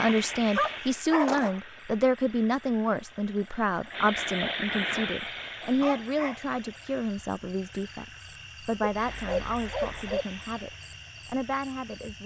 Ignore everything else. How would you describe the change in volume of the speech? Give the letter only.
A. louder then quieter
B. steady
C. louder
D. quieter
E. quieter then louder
D.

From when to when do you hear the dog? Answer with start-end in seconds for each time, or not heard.
0.1-1.6, 5.8-6.4, 8.9-10.2.